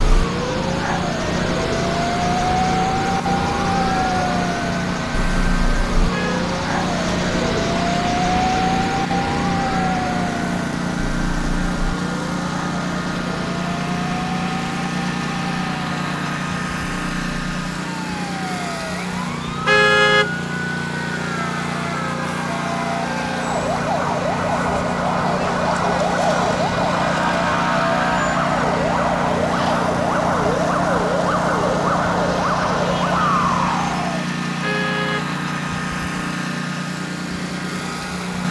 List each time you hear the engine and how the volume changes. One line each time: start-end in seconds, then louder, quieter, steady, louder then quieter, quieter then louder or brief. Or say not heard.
0.0-38.4 steady.